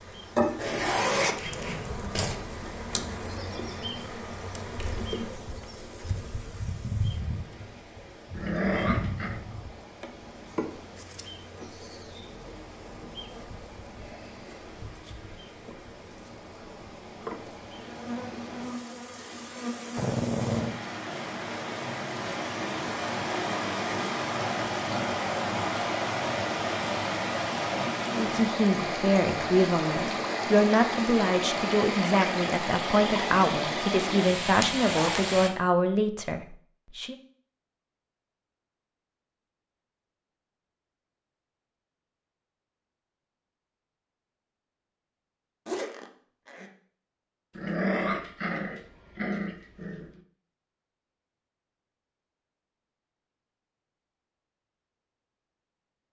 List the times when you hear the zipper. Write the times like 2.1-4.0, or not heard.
0.6-2.4, 34.6-35.4, 45.6-46.7.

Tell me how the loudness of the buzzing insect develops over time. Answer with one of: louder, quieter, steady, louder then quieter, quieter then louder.
quieter then louder.